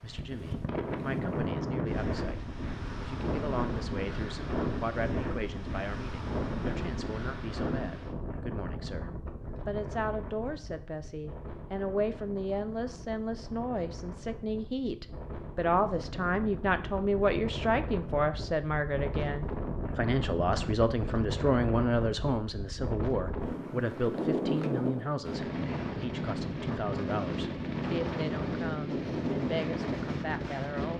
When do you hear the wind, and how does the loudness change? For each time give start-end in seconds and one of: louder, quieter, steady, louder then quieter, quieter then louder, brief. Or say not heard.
0.0-30.9 quieter then louder.